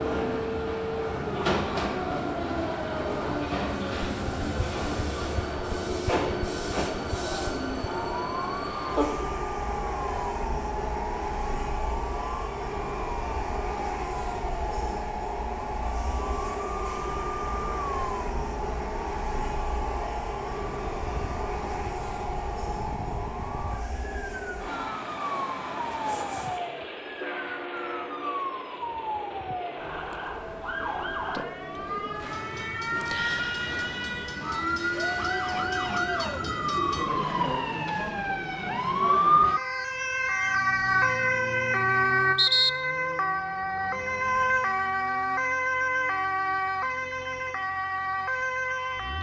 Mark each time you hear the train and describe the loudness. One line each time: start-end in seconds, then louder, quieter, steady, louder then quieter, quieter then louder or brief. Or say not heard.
0.0-37.0 quieter.